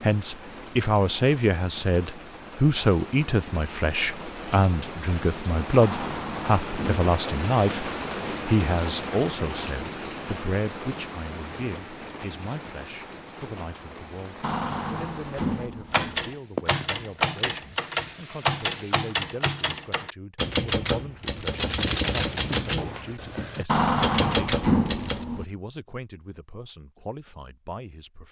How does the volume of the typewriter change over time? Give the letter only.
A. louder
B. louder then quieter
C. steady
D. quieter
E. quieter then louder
C.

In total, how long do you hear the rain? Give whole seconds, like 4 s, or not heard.
19 s.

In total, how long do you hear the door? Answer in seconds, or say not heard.
5 s.